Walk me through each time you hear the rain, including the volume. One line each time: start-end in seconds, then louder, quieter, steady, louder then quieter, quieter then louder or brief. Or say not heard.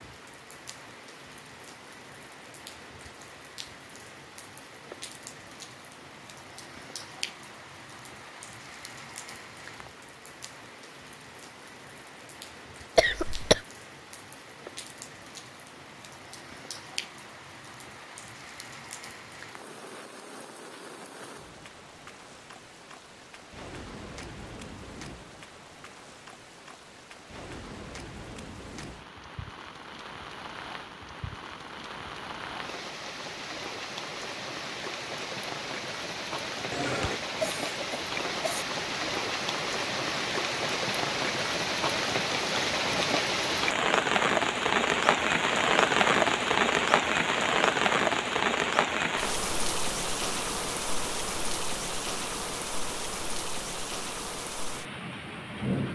0.0-55.8 louder.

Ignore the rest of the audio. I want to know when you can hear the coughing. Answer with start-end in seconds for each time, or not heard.
12.9-13.6, 36.7-38.6.